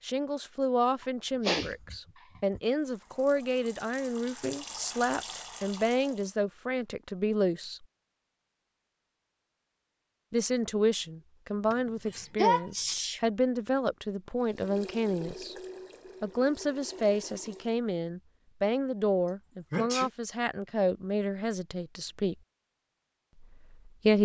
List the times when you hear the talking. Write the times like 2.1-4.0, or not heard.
0.0-7.8, 10.3-15.6, 16.2-22.4, 23.4-24.2.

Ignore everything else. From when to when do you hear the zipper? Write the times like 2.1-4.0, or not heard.
not heard.